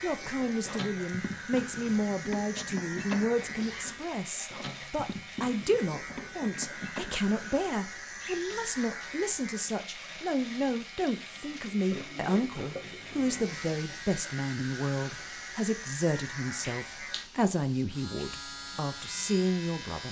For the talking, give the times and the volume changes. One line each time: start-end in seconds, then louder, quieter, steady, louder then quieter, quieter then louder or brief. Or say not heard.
0.0-20.0 steady.